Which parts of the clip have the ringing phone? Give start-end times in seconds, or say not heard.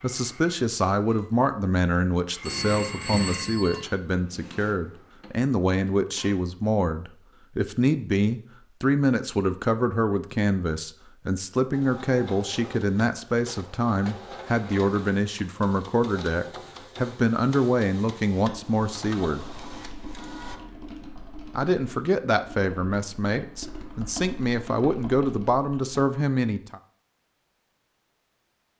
2.5-3.8.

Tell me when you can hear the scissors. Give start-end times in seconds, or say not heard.
not heard.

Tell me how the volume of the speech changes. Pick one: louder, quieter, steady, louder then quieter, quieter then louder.
steady.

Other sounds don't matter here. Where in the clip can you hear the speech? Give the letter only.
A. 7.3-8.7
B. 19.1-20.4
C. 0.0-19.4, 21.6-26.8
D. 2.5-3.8
C.